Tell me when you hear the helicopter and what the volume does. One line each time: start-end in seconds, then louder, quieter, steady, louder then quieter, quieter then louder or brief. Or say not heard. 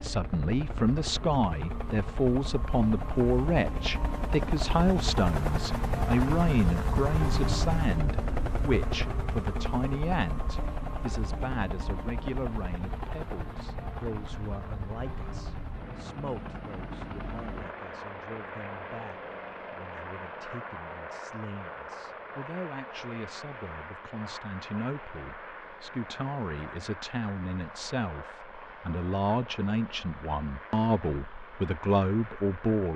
0.0-32.9 quieter.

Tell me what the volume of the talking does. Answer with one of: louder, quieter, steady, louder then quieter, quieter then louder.
quieter then louder.